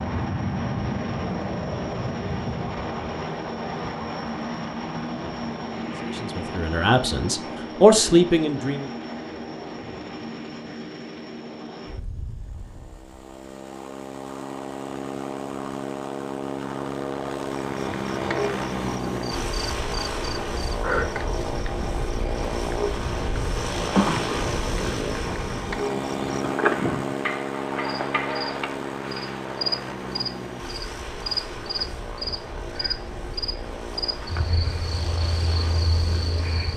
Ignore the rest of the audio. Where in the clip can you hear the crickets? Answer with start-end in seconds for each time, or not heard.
17.6-36.7.